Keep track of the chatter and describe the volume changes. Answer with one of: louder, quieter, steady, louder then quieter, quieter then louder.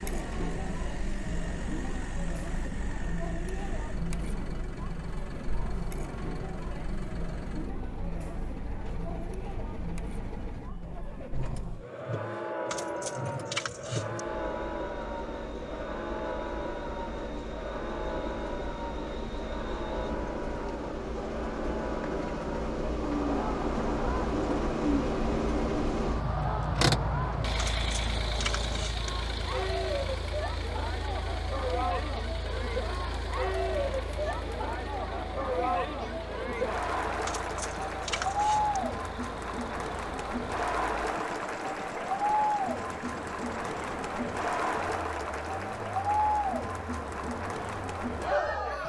louder.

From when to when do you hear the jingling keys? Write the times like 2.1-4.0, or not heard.
12.7-14.2, 27.6-29.1, 37.2-38.8.